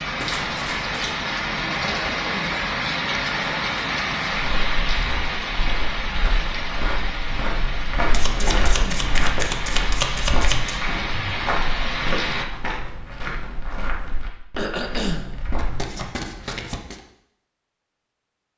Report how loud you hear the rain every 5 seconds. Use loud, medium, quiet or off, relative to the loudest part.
loud, medium, loud, off.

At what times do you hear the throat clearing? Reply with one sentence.
The throat clearing can be heard from 1.9 to 2.6 s, from 8.3 to 9.1 s and from 14.6 to 15.3 s.